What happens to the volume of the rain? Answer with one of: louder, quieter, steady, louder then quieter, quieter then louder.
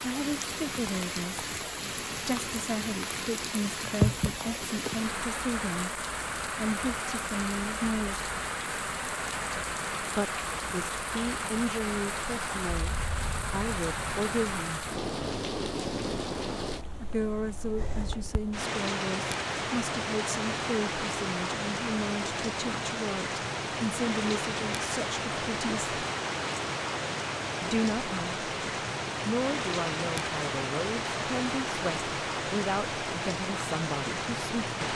steady.